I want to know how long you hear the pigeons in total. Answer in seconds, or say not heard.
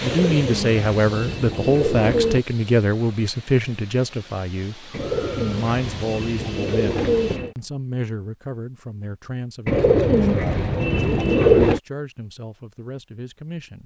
7 s.